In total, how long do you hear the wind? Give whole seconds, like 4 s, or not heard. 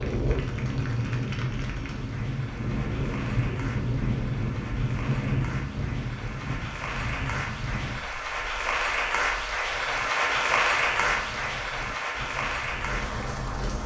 14 s.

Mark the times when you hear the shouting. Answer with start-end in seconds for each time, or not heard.
not heard.